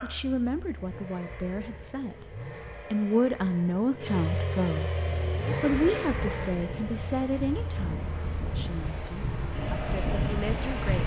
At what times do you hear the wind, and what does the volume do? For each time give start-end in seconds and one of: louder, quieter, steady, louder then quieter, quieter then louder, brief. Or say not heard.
5.0-11.0 louder.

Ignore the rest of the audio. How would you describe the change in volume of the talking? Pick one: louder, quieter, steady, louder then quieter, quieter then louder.
louder then quieter.